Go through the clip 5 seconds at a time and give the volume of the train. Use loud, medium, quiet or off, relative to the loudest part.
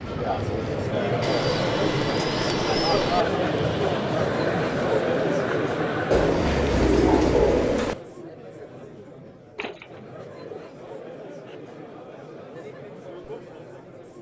loud, loud, off.